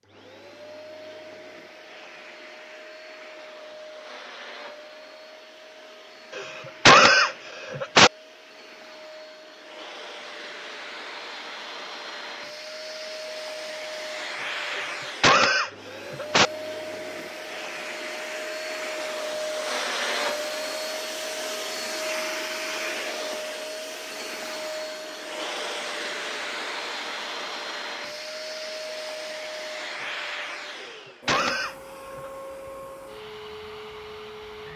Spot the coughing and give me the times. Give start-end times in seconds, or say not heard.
6.3-8.1, 14.7-16.5, 30.8-32.3.